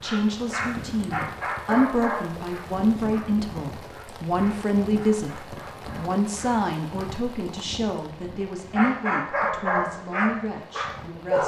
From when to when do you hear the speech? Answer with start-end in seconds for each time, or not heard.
0.0-11.4.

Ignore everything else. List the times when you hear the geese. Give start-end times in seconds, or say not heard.
not heard.